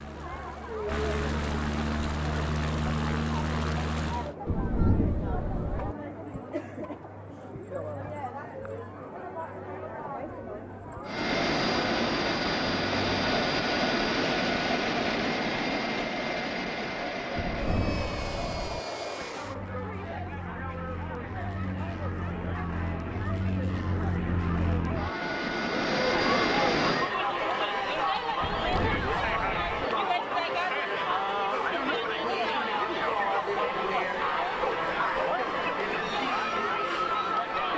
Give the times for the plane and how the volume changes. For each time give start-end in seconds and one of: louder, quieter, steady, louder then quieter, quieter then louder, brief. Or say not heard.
0.0-4.3 louder
11.1-27.1 quieter then louder.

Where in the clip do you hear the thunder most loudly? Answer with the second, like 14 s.
5 s.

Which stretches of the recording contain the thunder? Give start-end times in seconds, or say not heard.
4.5-6.0, 17.4-18.8, 28.4-29.9.